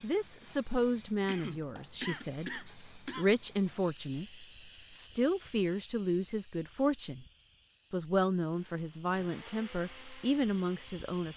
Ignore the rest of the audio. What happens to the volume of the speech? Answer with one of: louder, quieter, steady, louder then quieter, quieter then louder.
steady.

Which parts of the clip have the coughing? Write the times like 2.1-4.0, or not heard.
1.2-3.3.